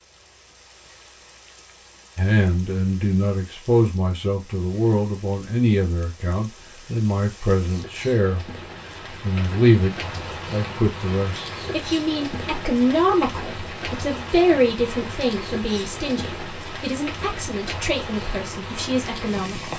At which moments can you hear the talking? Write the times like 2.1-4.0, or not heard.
2.1-19.7.